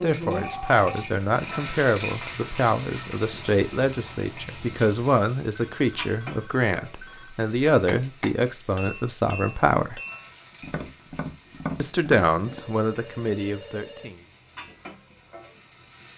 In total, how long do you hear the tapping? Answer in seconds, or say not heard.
5 s.